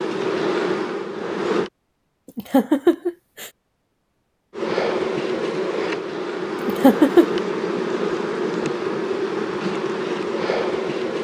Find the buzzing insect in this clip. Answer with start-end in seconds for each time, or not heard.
0.0-1.7, 4.5-11.1.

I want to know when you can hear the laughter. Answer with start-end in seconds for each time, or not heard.
2.4-3.5, 6.7-7.4.